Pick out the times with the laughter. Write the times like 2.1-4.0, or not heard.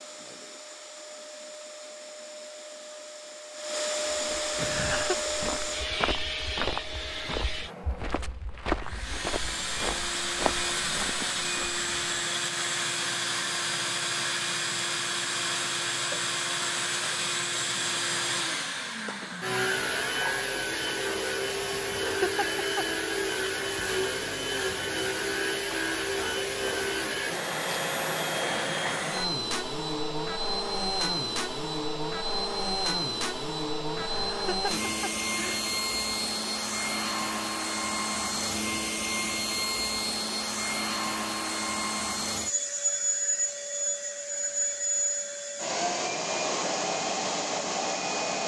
4.5-5.2, 21.7-22.6, 34.0-35.6.